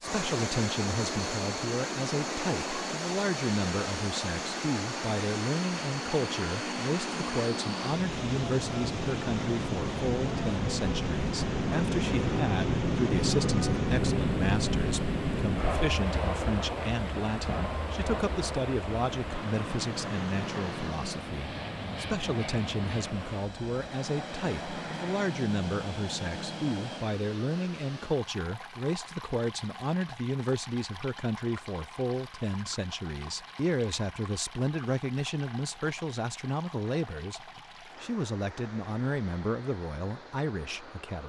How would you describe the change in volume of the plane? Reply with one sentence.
The loudness of the plane goes up, then down.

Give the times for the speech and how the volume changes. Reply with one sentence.
You can hear the speech from 0.0 to 41.2 s, at a steady volume.